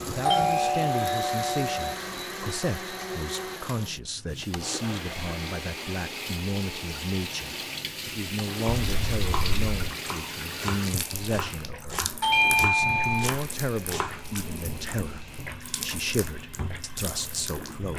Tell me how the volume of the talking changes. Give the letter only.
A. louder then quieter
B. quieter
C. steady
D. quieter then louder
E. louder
C.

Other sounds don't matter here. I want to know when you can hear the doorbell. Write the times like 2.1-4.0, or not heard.
0.2-1.9, 8.8-9.8, 12.2-13.3.